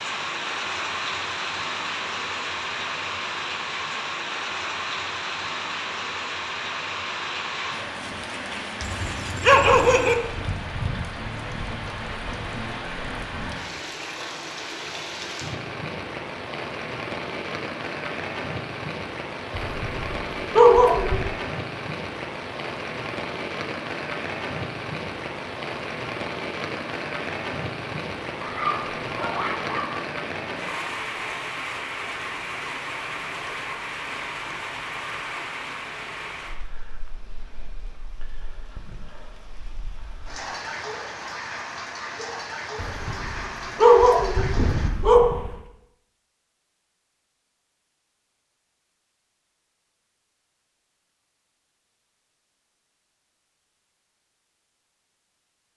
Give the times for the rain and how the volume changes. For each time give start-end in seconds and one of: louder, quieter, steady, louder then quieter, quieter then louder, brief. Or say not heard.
0.0-44.9 quieter.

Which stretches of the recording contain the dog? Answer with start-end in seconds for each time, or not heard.
8.8-10.2, 19.5-21.4, 28.4-29.9, 42.8-45.5.